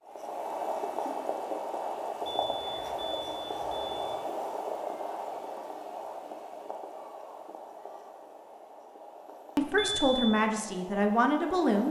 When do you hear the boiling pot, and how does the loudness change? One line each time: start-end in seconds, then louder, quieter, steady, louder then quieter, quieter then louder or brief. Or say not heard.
0.0-11.8 quieter.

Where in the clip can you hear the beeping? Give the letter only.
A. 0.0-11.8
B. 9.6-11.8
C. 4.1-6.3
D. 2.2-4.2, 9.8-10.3
D.